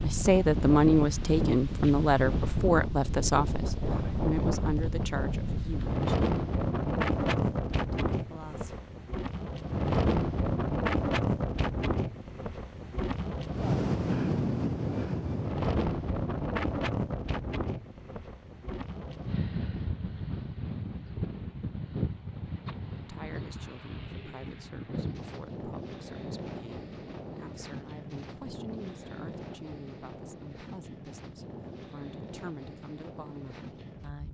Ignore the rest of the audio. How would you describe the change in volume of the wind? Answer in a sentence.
The loudness of the wind goes down.